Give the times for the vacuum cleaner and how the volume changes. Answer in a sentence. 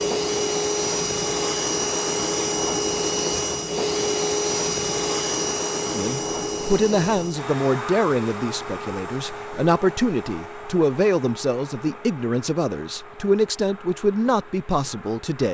The vacuum cleaner can be heard from 0.0 to 15.4 s, getting quieter.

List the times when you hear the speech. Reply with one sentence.
You can hear the speech from 5.9 to 15.4 s.